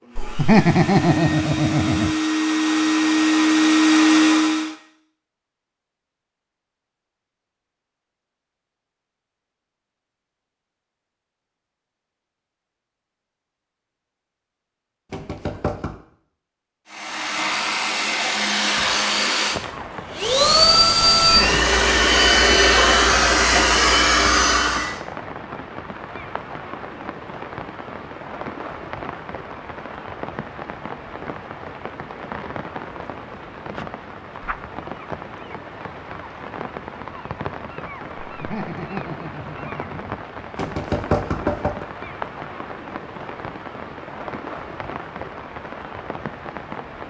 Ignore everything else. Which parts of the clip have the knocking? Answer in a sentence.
You can hear the knocking from 15.1 to 16.0 s and from 40.5 to 41.9 s.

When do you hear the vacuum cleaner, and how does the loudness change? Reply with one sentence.
You can hear the vacuum cleaner from 0.0 to 4.8 s, getting louder; and from 16.9 to 25.0 s, getting louder.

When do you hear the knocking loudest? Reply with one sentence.
The volume of the knocking peaks at 41 seconds.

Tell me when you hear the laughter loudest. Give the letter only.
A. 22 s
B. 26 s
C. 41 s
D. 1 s
D.